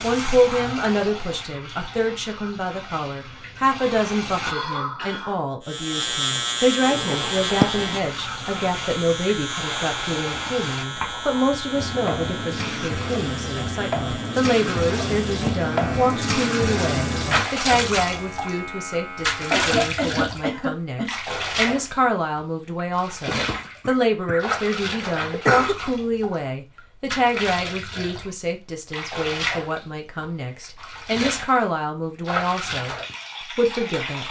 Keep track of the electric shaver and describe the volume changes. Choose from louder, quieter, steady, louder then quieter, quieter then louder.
quieter.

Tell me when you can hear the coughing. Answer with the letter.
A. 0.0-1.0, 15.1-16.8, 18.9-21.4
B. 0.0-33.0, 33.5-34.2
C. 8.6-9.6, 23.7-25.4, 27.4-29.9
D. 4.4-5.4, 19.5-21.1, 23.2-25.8
D.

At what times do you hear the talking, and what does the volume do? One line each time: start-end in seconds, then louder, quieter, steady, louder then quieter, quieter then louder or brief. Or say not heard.
0.0-33.0 steady
33.5-34.2 brief.